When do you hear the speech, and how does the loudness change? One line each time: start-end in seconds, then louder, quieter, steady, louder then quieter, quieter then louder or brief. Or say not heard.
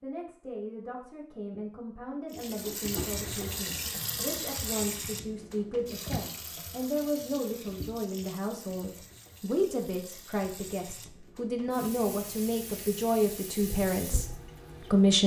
0.0-15.2 louder.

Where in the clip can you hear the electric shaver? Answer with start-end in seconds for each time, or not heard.
not heard.